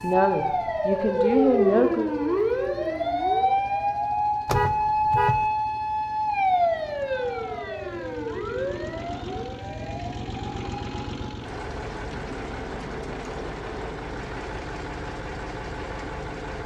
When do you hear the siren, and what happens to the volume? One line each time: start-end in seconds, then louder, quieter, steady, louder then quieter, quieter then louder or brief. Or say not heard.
0.0-11.2 quieter.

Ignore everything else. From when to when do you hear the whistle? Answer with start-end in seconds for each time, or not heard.
not heard.